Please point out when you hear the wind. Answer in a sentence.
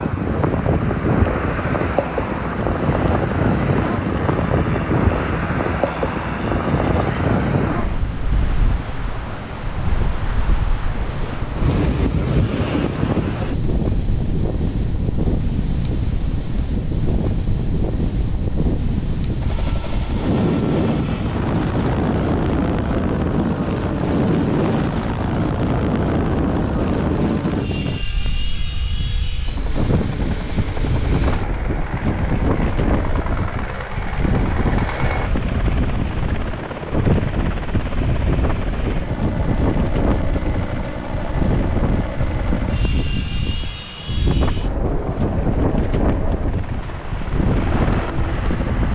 You can hear the wind from 0.0 to 48.9 s.